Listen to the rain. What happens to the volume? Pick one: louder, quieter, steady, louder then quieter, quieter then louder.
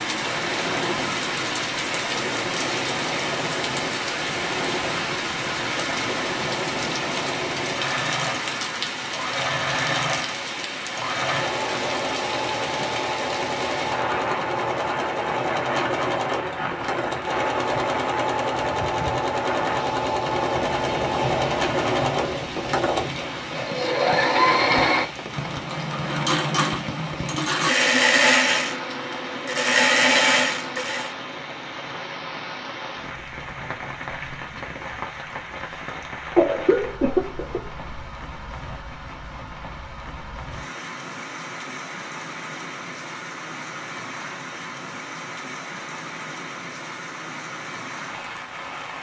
quieter.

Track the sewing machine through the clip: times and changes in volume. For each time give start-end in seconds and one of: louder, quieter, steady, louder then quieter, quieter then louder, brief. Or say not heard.
0.2-31.1 louder.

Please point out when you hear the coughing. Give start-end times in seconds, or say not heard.
36.4-37.9.